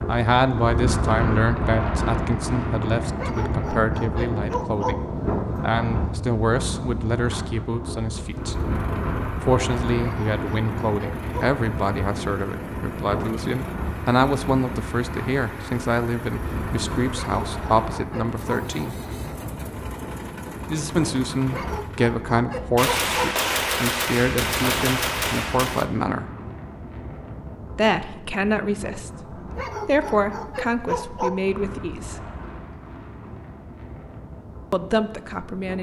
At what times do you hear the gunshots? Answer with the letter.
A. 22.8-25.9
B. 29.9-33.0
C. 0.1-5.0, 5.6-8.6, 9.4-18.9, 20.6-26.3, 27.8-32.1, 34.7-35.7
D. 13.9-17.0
A.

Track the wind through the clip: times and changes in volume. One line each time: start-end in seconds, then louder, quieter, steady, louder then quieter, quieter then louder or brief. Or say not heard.
0.0-35.7 quieter.